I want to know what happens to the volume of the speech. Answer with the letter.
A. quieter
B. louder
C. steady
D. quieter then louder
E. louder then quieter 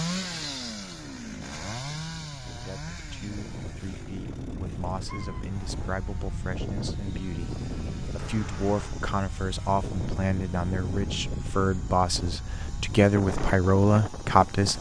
B.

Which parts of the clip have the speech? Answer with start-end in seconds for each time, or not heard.
2.5-14.7.